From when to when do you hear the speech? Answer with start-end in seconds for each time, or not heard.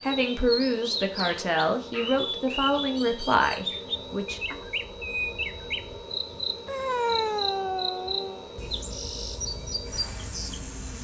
0.0-4.6.